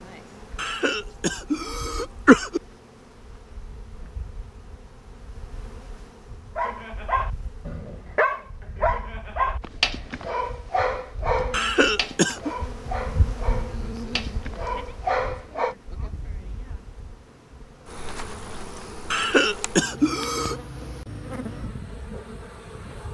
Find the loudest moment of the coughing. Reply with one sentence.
The volume of the coughing peaks at 2 seconds.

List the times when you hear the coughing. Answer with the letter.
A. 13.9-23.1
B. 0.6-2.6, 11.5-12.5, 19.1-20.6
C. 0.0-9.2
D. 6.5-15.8
B.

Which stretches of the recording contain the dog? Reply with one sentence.
You can hear the dog from 6.5 to 15.8 s.